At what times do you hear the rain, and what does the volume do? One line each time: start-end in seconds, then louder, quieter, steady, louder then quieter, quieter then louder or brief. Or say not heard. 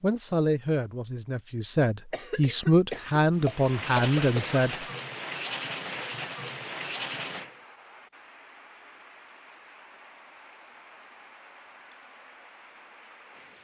3.3-13.5 quieter.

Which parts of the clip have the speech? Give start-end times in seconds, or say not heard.
0.0-4.8.